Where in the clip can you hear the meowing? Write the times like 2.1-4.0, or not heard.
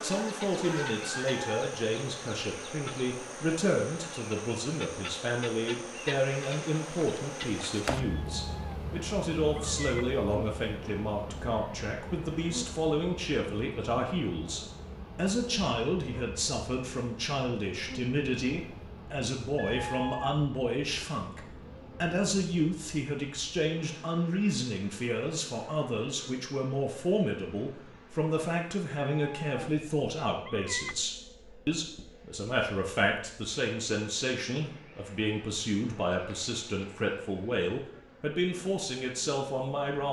8.0-8.8, 9.4-10.1, 19.6-21.1, 29.1-29.7, 30.4-30.9.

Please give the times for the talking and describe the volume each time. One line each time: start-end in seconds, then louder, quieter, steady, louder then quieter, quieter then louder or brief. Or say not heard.
0.0-40.0 steady.